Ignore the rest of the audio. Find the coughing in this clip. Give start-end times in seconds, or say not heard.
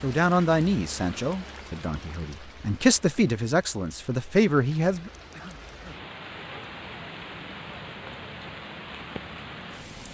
5.3-6.0.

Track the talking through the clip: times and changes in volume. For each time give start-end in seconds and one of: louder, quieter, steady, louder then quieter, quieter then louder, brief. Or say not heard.
0.0-5.1 quieter then louder.